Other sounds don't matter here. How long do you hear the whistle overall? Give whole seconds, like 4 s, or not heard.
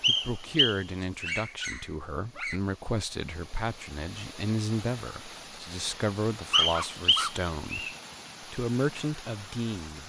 3 s.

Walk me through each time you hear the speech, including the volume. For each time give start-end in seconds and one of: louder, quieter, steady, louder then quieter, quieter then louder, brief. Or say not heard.
0.1-10.0 steady.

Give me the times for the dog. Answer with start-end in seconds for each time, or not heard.
1.0-2.6, 6.3-7.3.